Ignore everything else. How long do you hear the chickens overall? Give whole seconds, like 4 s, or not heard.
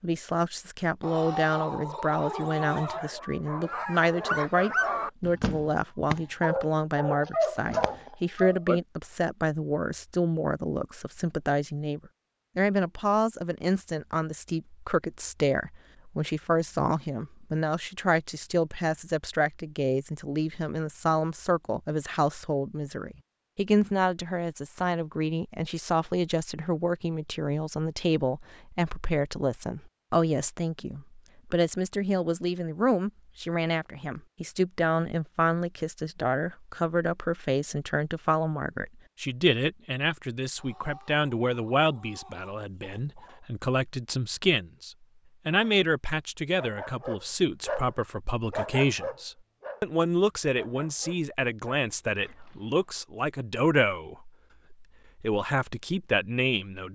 5 s.